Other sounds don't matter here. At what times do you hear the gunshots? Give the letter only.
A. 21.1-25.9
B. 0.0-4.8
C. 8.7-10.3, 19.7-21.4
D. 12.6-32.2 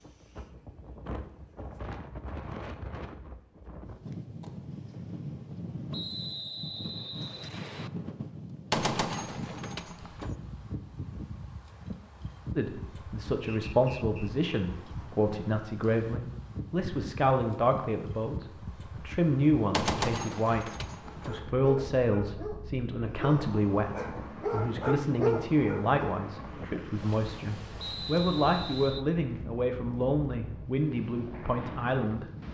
C.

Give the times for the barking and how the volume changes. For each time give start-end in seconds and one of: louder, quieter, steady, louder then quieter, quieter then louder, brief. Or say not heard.
21.1-25.9 louder.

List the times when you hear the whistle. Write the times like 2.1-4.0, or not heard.
5.9-7.9, 13.4-14.3, 27.8-29.1.